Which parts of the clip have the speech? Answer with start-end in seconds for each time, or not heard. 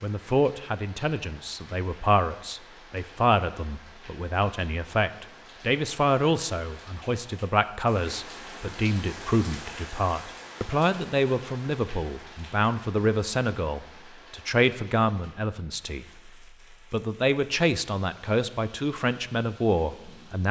0.0-20.4.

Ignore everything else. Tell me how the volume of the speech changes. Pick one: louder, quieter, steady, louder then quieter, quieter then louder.
steady.